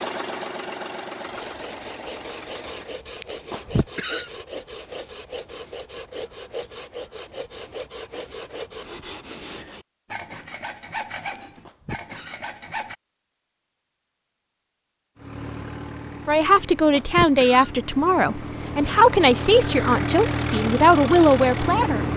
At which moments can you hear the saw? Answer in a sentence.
You can hear the saw from 1.2 to 12.9 s.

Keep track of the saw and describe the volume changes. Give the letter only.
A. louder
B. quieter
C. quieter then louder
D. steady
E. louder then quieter
D.